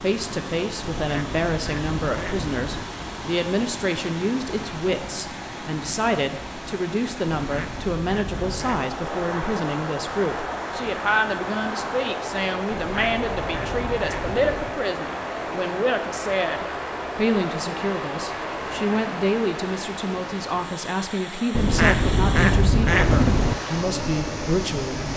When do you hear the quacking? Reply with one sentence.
The quacking can be heard from 0.9 to 2.8 s, from 7.3 to 8.9 s, from 12.7 to 14.7 s and from 21.5 to 23.6 s.